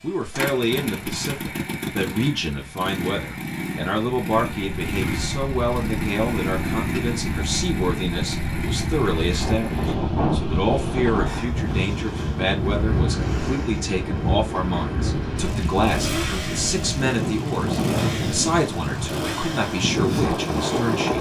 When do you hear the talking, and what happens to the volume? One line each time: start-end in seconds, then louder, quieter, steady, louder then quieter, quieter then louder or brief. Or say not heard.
0.0-21.1 steady.